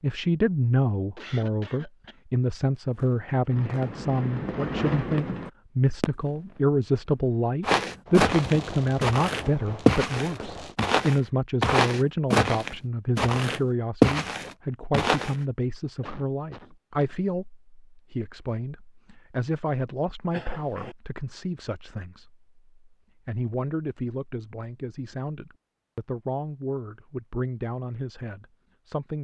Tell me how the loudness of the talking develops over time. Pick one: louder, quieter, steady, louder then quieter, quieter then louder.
quieter.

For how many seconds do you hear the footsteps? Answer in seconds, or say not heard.
8 s.